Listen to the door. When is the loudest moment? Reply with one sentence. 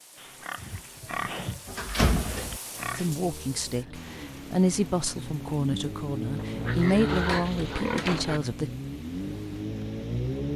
The volume of the door peaks at 2 seconds.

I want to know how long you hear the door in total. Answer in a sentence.
The door can be heard for 3 seconds in total.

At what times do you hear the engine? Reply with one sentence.
You can hear the engine from 2.6 to 10.5 s.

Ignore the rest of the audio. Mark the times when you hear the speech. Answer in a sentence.
The speech can be heard from 3.0 to 8.7 s.